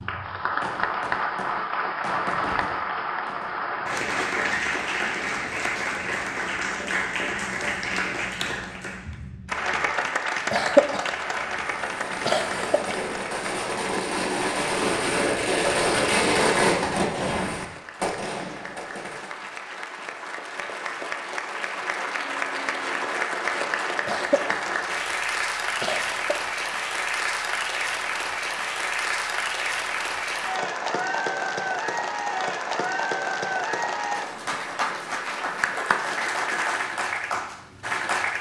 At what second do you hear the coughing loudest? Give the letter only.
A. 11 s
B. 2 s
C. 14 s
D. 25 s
A.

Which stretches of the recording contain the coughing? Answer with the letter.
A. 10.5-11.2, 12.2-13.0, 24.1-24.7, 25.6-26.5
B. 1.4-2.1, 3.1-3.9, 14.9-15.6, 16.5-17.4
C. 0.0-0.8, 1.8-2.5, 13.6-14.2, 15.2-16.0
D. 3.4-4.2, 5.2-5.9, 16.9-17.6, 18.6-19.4
A.